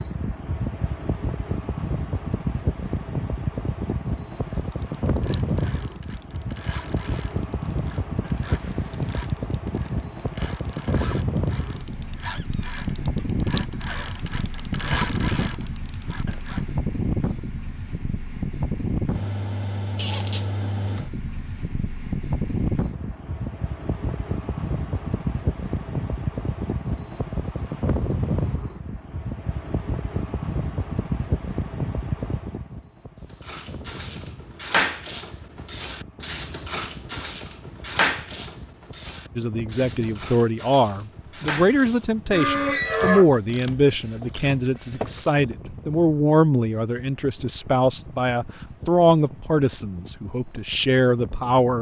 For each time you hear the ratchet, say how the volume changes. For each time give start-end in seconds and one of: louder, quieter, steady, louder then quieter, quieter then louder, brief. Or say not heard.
4.5-16.8 louder
33.2-45.4 quieter.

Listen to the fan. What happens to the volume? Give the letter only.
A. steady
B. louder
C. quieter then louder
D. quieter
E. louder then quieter
D.